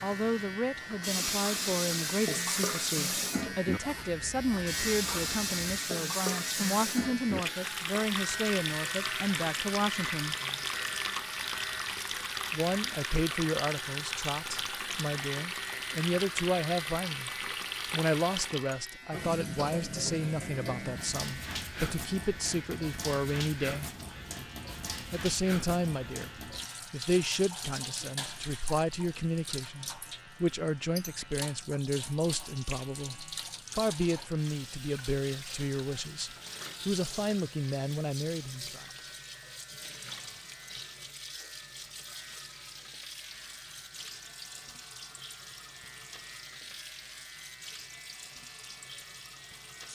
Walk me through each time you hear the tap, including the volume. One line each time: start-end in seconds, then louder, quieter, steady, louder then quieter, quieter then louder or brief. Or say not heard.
0.0-49.8 quieter.